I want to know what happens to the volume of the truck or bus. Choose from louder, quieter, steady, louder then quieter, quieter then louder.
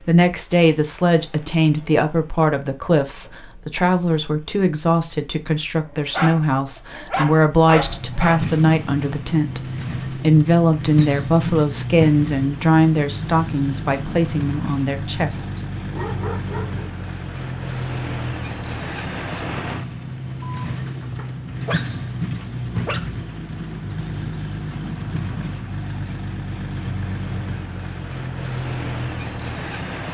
louder.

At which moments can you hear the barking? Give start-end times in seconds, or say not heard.
5.8-8.4, 15.3-16.9, 20.6-23.1.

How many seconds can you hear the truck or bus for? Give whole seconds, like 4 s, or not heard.
30 s.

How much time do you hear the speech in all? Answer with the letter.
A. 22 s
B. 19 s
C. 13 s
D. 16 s
D.